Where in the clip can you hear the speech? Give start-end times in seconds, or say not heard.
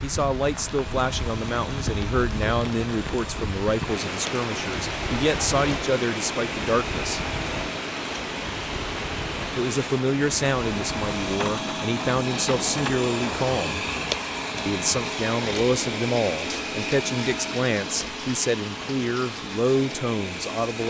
0.0-7.2, 9.6-13.8, 14.7-20.8.